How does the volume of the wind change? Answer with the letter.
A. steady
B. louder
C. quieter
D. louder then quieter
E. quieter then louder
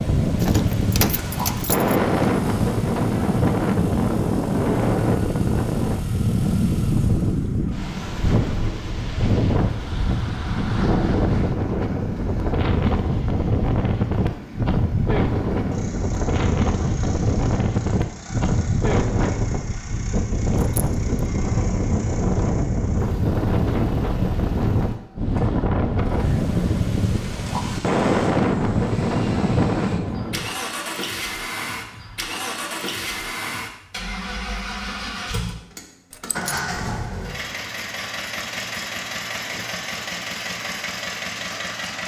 A.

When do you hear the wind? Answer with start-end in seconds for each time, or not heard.
0.0-30.4.